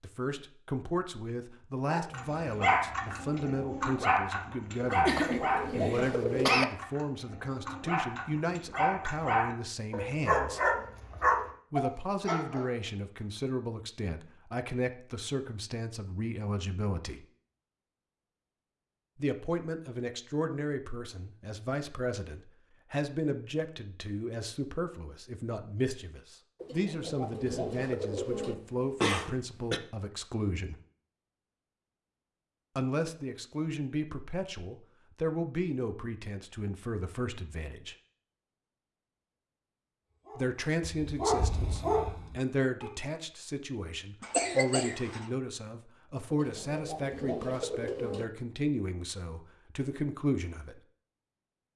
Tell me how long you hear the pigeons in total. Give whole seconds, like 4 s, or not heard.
6 s.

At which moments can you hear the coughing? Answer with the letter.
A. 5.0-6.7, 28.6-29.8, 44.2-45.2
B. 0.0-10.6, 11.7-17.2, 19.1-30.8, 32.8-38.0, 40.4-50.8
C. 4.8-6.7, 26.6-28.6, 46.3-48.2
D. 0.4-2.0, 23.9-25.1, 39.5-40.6
A.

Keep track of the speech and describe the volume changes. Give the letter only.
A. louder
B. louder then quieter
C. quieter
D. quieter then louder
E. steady
E.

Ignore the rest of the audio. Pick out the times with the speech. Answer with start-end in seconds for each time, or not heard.
0.0-10.6, 11.7-17.2, 19.1-30.8, 32.8-38.0, 40.4-50.8.